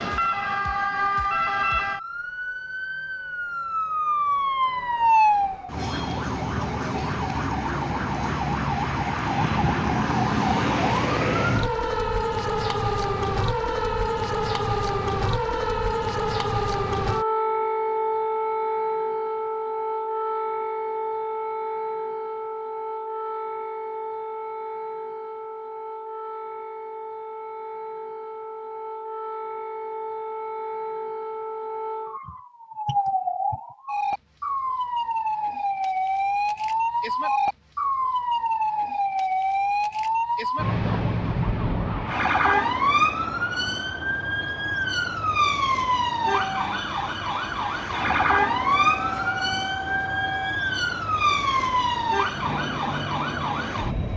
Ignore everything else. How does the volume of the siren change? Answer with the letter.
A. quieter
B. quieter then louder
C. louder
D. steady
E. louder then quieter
B.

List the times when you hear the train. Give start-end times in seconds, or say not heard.
46.3-54.1.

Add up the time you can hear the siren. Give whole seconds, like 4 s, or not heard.
54 s.